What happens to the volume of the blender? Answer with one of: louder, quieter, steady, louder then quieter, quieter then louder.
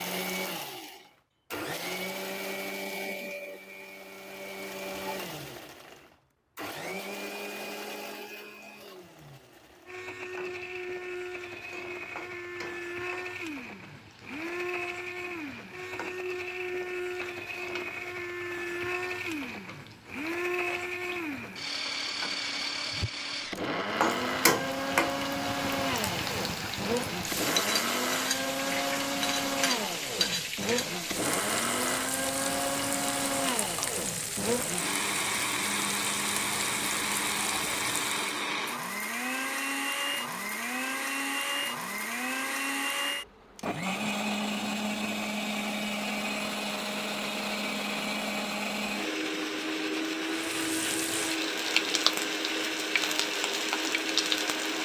louder.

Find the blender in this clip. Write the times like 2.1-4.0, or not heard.
0.0-54.8.